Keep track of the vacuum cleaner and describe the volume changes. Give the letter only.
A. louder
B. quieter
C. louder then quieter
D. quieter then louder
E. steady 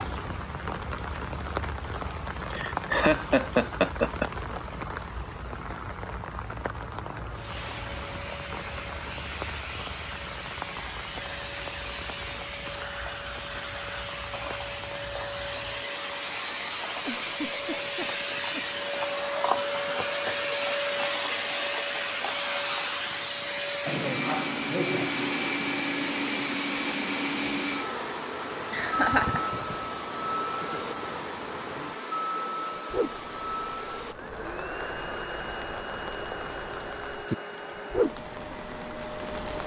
C.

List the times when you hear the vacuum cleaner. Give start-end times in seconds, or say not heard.
7.3-39.6.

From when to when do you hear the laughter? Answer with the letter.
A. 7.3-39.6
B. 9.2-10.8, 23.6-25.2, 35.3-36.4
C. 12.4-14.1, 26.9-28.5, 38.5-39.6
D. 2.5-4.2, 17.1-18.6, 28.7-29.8
D.